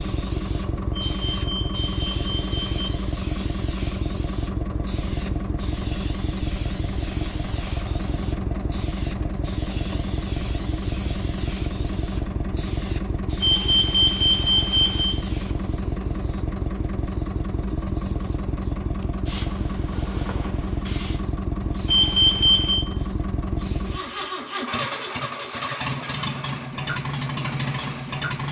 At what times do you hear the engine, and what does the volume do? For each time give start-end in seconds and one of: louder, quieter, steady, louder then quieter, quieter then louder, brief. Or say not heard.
0.0-28.4 steady.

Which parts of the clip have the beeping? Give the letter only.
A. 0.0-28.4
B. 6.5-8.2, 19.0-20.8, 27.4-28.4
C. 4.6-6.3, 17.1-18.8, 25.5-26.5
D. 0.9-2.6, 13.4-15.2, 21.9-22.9
D.